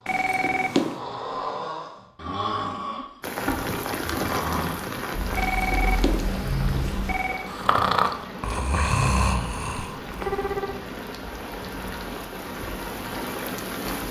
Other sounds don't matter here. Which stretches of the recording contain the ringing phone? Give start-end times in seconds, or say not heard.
0.1-0.9, 5.3-7.5, 9.7-10.8.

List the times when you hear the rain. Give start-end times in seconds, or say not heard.
3.2-14.0.